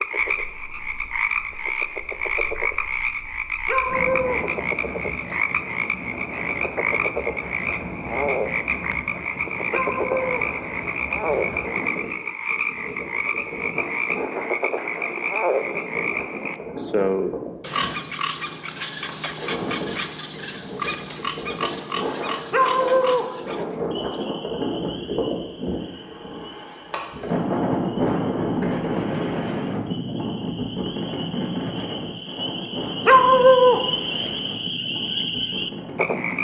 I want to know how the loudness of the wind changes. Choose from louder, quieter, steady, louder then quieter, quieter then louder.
louder.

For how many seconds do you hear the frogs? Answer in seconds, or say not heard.
36 s.